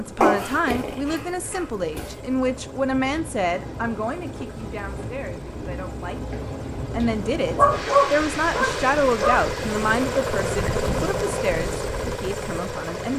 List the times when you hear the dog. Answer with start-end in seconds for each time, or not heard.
0.2-2.1, 7.5-9.3.